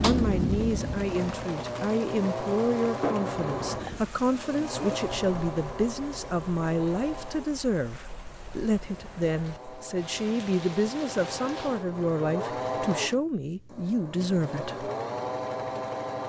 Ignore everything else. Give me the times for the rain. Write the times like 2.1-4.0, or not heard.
0.0-11.9.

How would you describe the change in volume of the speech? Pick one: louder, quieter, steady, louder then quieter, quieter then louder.
steady.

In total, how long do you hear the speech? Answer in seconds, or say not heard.
15 s.